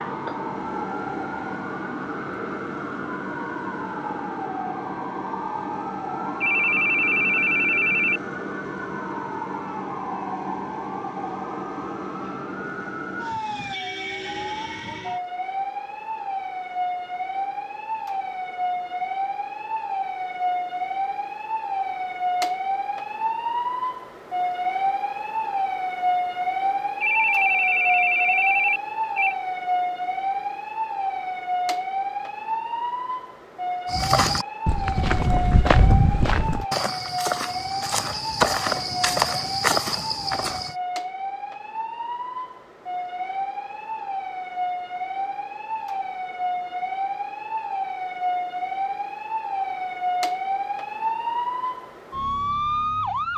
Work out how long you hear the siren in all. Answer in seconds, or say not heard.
53 s.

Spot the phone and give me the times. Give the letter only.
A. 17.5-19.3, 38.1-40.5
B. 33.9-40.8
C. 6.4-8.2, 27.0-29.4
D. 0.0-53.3
C.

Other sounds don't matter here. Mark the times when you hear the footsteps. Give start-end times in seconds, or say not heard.
33.9-40.8.